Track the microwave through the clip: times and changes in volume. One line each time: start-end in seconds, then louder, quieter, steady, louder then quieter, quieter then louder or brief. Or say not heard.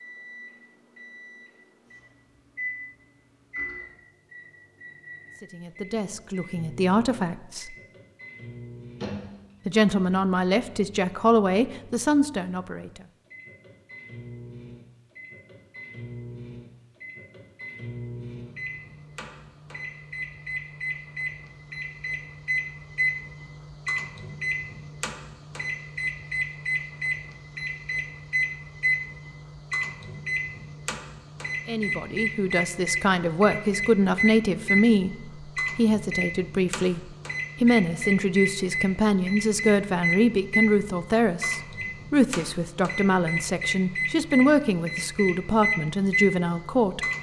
0.0-47.1 louder.